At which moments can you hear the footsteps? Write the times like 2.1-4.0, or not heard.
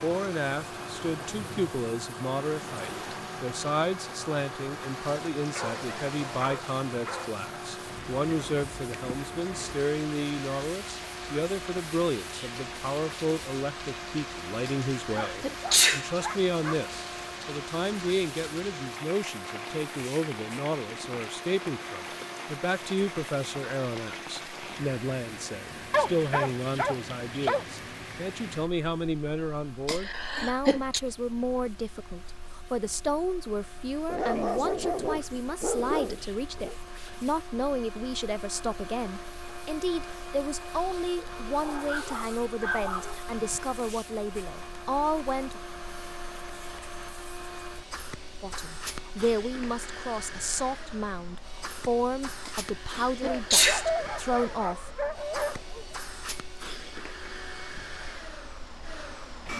not heard.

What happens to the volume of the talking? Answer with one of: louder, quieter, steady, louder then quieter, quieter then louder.
steady.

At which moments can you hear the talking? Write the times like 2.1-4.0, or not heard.
0.0-45.6, 48.4-55.0.